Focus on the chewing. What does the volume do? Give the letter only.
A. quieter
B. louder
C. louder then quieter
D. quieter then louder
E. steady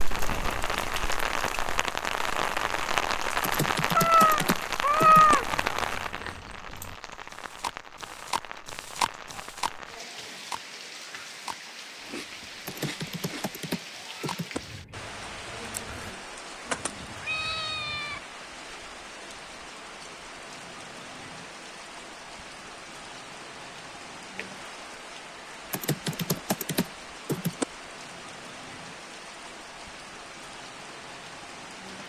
C.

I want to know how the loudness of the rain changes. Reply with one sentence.
The loudness of the rain goes down.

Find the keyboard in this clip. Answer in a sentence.
The keyboard can be heard from 3.4 to 5.3 s, from 12.7 to 14.6 s and from 25.7 to 27.6 s.